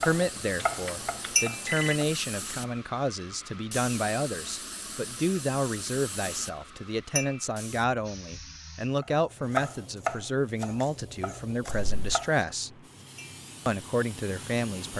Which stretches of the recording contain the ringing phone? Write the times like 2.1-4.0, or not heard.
0.6-1.9, 11.7-12.2.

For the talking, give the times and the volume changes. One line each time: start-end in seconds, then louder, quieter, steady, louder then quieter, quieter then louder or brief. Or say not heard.
0.0-12.7 steady
13.7-14.9 brief.